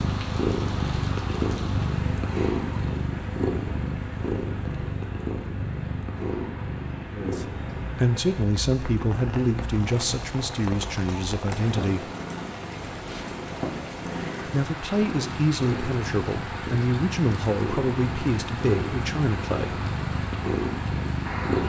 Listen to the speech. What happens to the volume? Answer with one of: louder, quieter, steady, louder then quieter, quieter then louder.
steady.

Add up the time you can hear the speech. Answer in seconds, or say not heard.
10 s.